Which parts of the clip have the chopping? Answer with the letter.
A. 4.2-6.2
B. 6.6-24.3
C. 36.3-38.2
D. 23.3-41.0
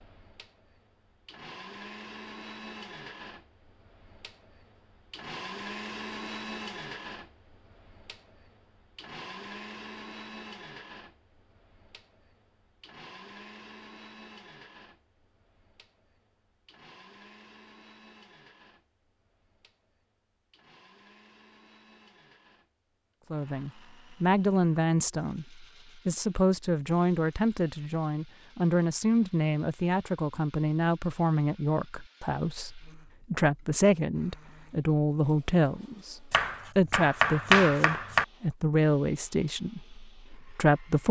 C.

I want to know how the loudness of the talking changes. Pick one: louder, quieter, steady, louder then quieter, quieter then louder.
steady.